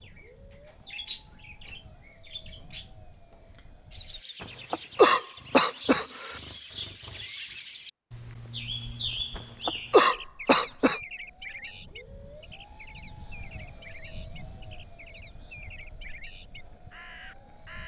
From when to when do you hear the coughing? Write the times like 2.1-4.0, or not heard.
4.4-6.4, 9.3-11.0.